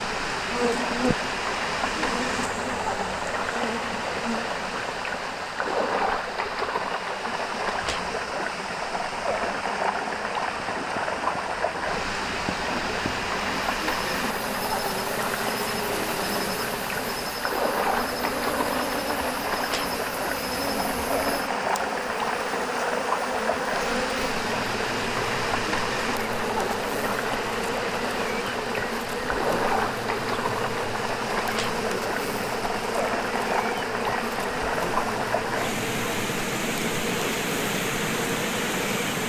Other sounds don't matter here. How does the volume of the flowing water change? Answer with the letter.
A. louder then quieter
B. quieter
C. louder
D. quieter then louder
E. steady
E.